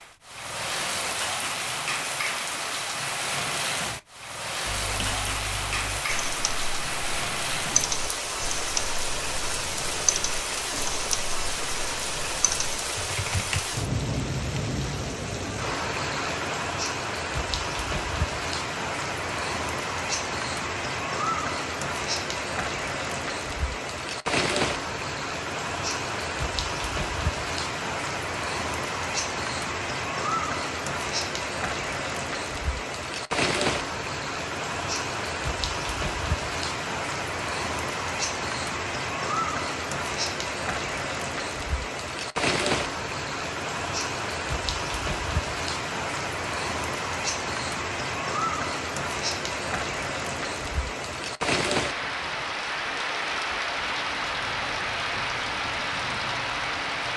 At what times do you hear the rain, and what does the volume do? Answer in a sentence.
You can hear the rain from 0.0 to 57.1 s, at a steady volume.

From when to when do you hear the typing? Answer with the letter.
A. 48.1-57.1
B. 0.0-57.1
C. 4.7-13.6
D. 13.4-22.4
C.